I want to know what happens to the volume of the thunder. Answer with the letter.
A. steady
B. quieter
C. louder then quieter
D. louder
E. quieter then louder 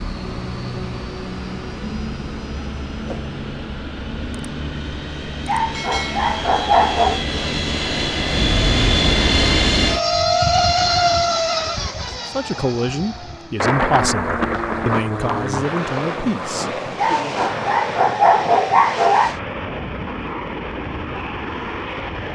B.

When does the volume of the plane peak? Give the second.
11 s.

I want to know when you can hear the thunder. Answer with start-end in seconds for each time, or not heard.
13.6-17.9.